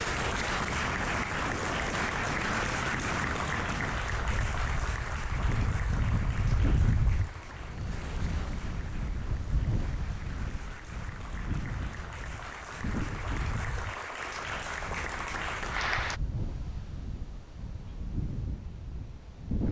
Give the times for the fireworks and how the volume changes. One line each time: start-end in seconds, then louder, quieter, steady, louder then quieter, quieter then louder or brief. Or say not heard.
not heard.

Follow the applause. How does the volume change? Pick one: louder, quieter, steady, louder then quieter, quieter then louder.
quieter then louder.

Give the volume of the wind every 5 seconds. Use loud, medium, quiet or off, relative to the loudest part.
loud, loud, medium, medium.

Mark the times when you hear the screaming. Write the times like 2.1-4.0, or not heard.
not heard.